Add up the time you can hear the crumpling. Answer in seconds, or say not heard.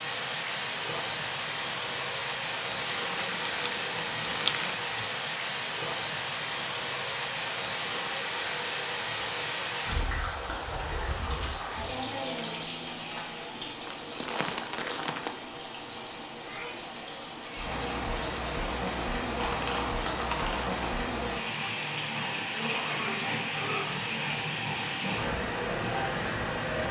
5 s.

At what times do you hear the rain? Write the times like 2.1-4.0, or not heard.
0.0-26.8.